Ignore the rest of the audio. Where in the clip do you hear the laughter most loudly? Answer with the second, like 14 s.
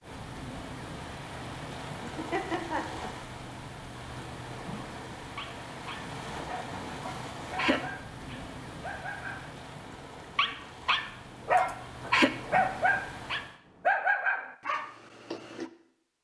12 s.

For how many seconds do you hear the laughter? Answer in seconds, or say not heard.
3 s.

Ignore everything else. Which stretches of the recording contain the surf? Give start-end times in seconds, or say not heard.
0.0-13.6.